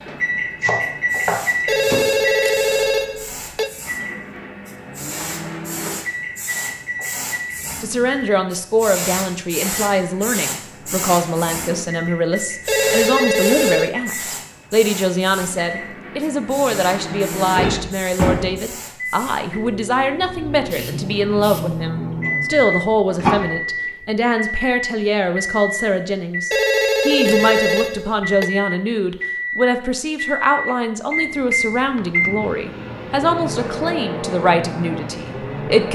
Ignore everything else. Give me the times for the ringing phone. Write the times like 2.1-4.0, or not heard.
1.6-3.7, 12.7-13.9, 26.5-28.5.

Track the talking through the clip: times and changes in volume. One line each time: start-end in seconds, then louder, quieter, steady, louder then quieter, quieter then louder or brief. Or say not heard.
7.8-35.9 steady.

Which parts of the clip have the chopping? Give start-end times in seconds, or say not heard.
0.6-2.1.